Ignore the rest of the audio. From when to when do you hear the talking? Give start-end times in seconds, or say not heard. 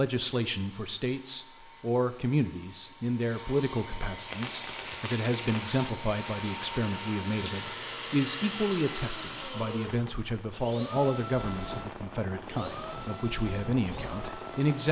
0.0-14.8.